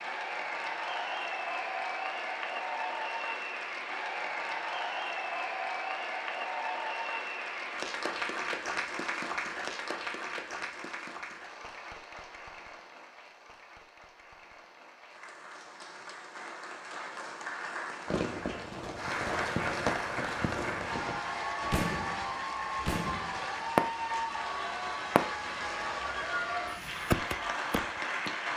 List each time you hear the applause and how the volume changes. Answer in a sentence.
The applause can be heard from 0.0 to 28.5 s, getting quieter then louder.